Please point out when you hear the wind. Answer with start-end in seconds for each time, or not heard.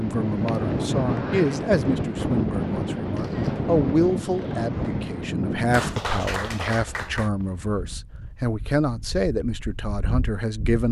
0.0-10.8.